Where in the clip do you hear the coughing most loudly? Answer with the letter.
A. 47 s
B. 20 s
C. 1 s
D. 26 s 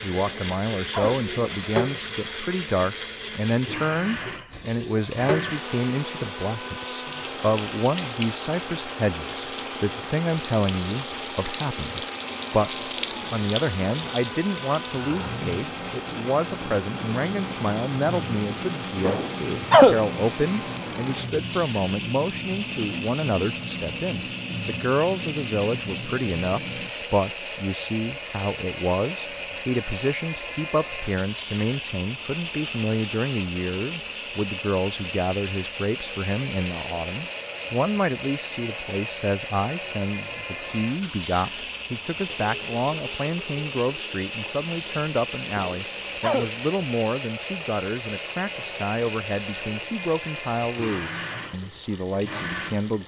B.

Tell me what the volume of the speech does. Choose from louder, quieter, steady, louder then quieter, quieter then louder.
steady.